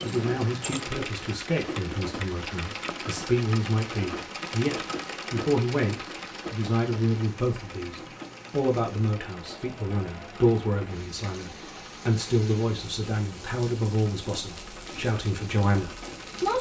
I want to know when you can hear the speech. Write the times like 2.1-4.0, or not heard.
0.0-16.5.